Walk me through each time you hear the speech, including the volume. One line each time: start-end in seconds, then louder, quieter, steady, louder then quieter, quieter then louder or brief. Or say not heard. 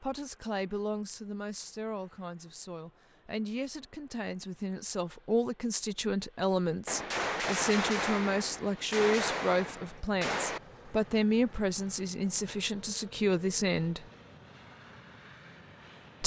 0.0-14.1 louder.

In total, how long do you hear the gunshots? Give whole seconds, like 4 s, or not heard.
4 s.